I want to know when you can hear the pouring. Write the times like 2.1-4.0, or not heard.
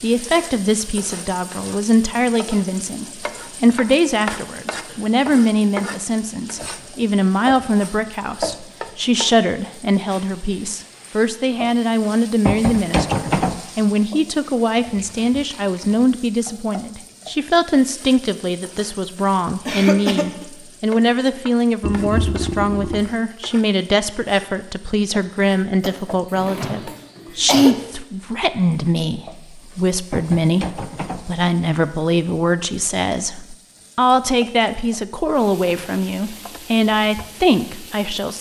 14.8-16.1, 21.8-23.0.